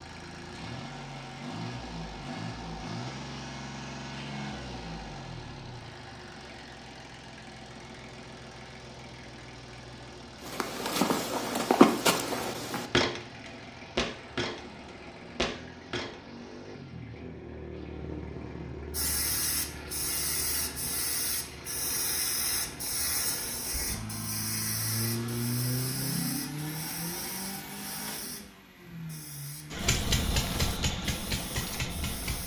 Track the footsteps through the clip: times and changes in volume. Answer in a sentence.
You can hear the footsteps from 10.4 to 16.1 s, getting quieter.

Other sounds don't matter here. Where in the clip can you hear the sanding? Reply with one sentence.
You can't hear the sanding here.